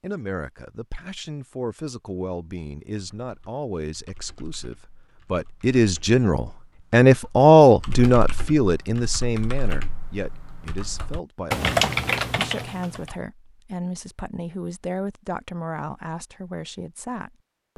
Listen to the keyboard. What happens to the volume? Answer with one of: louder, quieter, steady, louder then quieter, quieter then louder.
louder.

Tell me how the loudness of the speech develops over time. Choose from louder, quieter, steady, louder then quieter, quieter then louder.
louder then quieter.